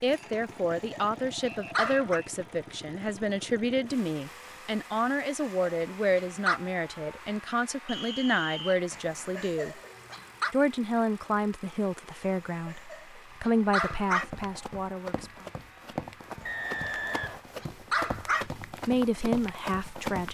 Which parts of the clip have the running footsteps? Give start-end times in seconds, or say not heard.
13.7-20.3.